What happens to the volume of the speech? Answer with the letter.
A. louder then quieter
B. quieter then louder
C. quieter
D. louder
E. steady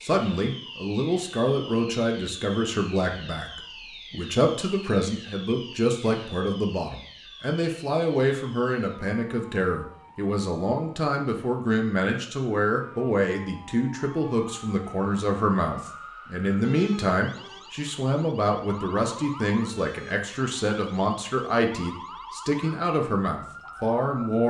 E.